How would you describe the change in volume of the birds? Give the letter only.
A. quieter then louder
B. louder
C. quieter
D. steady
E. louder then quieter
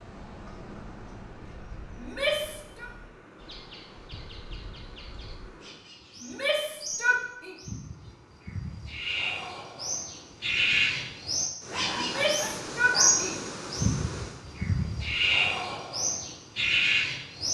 B.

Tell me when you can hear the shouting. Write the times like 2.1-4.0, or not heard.
2.0-2.9, 6.2-7.5, 12.0-13.4.